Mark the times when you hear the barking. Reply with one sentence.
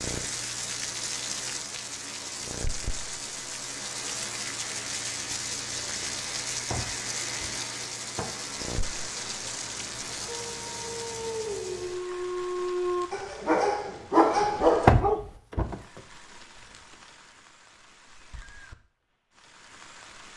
You can hear the barking from 10.2 to 15.2 s.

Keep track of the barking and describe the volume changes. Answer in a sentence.
The volume of the barking goes up.